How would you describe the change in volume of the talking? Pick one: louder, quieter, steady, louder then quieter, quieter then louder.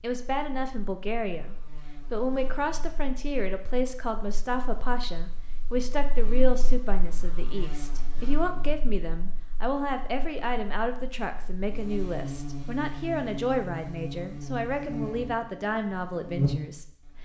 steady.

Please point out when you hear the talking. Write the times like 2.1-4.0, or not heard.
0.0-17.1.